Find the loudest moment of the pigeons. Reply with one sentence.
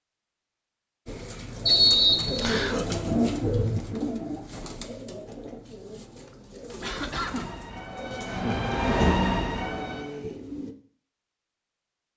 The loudest moment of the pigeons is at 3 seconds.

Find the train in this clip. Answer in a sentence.
The train can be heard from 7.2 to 10.2 s.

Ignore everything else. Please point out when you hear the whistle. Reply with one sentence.
You can hear the whistle from 1.6 to 2.8 s.